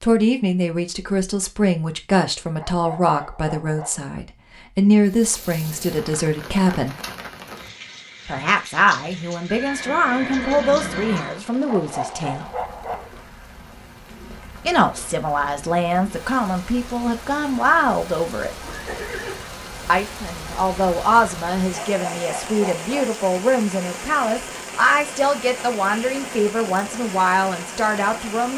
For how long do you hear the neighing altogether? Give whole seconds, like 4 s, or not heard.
3 s.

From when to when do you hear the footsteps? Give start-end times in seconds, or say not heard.
not heard.